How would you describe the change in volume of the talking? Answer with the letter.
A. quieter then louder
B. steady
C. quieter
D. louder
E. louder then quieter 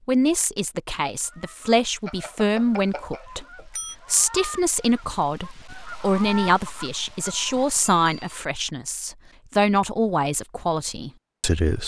B.